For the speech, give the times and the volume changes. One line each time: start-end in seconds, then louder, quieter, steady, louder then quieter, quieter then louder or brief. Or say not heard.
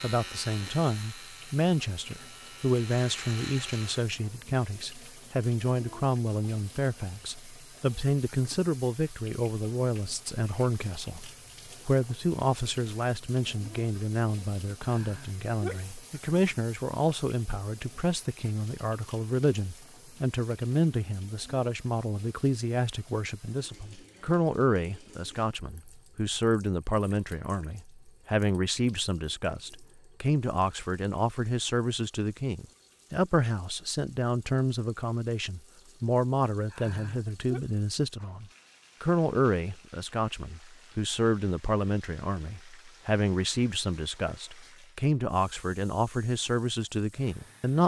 0.0-47.8 steady.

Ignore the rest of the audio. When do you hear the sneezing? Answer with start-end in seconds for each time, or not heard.
14.8-15.8, 36.7-37.6.